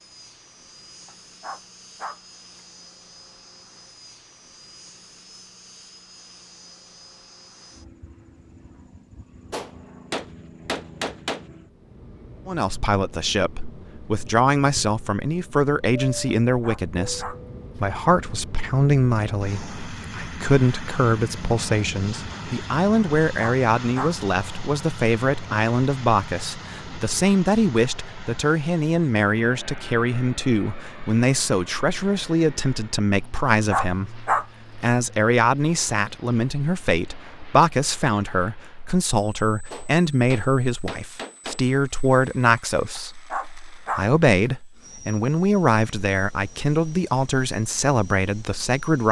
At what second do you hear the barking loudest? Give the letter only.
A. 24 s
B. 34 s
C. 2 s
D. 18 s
B.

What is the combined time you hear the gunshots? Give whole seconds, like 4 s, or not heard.
4 s.